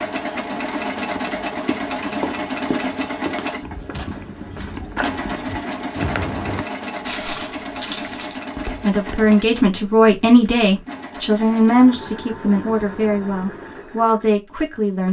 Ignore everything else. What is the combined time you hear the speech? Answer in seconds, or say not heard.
6 s.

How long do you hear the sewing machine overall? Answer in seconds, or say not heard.
15 s.